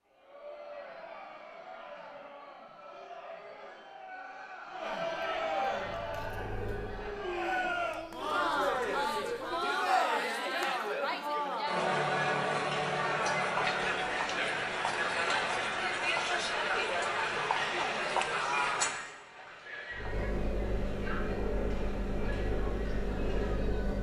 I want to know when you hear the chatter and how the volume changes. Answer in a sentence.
The chatter can be heard from 0.1 to 23.9 s, getting louder then quieter.